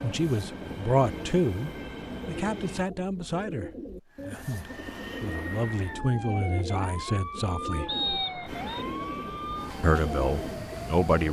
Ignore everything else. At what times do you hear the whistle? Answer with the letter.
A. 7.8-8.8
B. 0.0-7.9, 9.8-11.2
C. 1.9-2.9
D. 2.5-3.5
A.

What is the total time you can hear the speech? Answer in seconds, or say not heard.
9 s.